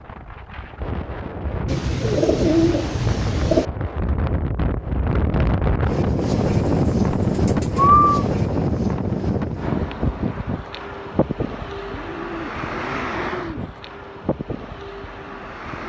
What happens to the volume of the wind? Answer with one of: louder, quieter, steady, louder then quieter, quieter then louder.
louder then quieter.